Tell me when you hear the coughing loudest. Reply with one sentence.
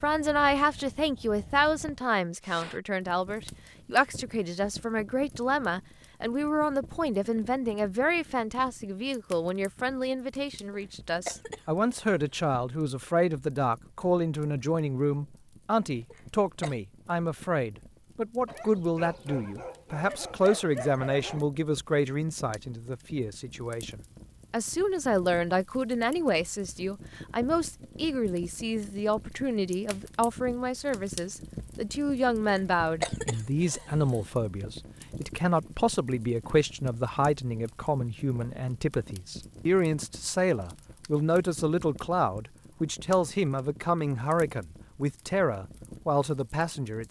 The volume of the coughing peaks at 33 seconds.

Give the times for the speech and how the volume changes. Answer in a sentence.
You can hear the speech from 0.0 to 47.0 s, at a steady volume.